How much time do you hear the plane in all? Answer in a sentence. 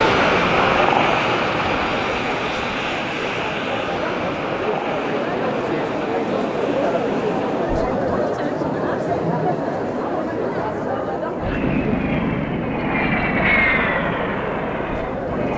The plane can be heard for 12 seconds in total.